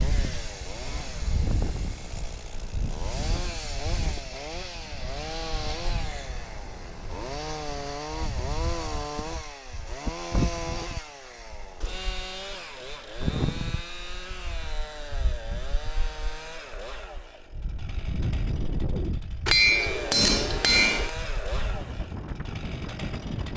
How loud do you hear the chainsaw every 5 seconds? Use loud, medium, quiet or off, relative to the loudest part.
loud, loud, loud, medium, loud.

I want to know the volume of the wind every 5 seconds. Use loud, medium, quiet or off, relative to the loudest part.
loud, medium, loud, loud, loud.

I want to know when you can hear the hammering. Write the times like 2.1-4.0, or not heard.
19.4-21.1.